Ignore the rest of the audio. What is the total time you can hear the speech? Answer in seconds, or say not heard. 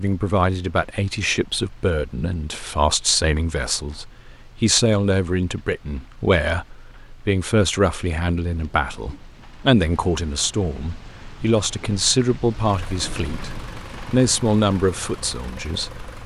16 s.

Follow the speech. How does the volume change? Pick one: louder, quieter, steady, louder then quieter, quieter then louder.
steady.